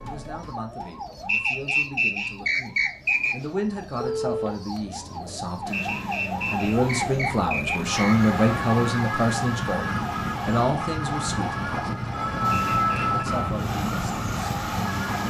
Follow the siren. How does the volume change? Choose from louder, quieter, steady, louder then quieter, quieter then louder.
louder.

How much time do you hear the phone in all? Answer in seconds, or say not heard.
2 s.